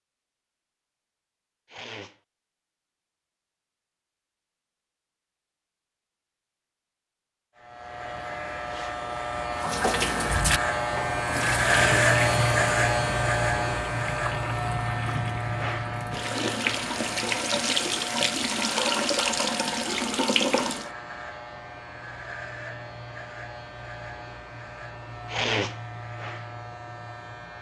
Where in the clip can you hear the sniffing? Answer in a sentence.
The sniffing can be heard from 1.6 to 2.2 s, from 11.7 to 12.2 s and from 25.2 to 25.8 s.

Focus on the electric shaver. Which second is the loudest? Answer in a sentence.
The volume of the electric shaver peaks at 12 seconds.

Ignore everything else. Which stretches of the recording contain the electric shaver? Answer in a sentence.
The electric shaver can be heard from 7.5 to 27.5 s.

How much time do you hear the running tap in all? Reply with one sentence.
The running tap can be heard for 11 seconds in total.